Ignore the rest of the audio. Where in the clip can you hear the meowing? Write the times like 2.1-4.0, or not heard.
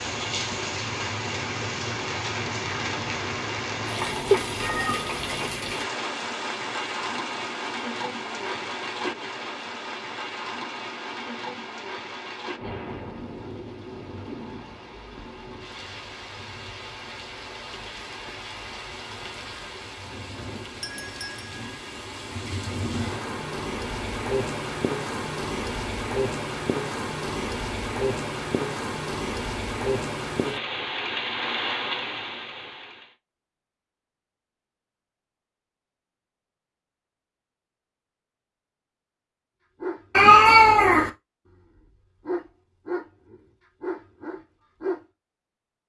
4.3-5.2, 40.1-41.1.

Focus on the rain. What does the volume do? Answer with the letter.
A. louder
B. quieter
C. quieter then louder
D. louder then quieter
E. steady
C.